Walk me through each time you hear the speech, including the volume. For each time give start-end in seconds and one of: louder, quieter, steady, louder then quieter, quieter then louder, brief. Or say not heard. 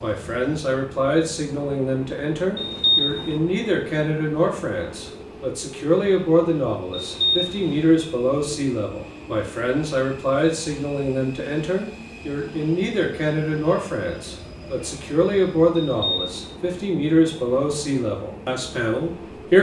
0.0-19.5 steady.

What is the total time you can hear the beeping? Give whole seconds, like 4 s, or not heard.
2 s.